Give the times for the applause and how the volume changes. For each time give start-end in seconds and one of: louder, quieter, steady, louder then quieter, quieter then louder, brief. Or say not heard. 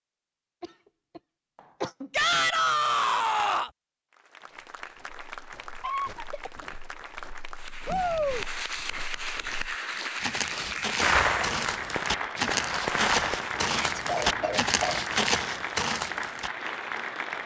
4.1-17.4 louder.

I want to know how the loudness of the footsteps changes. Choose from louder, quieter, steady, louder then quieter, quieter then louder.
louder.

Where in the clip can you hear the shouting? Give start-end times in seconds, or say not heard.
2.1-3.7, 7.8-8.4, 13.6-14.0.